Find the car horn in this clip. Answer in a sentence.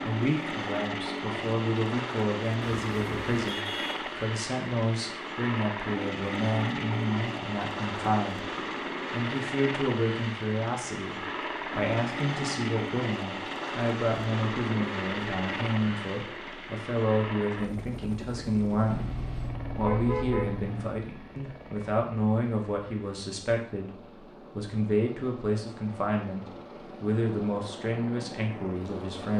The car horn can be heard from 2.9 to 4.2 s and from 18.9 to 20.9 s.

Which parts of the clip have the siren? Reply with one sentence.
You can't hear the siren here.